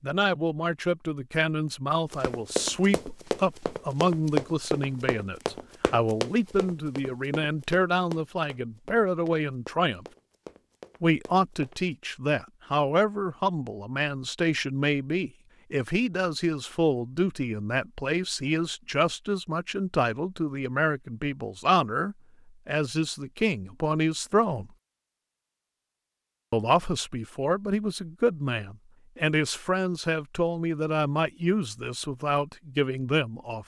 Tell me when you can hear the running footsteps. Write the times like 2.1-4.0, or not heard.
2.1-11.8.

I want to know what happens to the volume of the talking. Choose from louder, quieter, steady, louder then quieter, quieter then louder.
steady.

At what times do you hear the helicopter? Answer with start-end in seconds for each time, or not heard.
not heard.